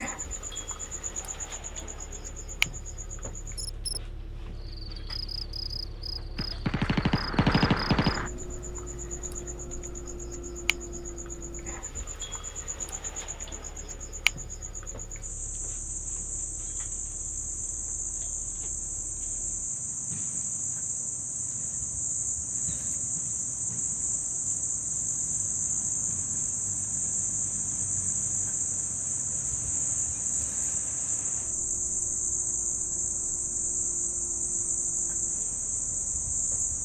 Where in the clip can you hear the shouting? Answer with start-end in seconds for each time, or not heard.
not heard.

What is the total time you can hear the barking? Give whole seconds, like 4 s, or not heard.
not heard.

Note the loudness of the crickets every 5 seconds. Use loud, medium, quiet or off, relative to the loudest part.
medium, medium, medium, medium, loud, loud, loud, loud.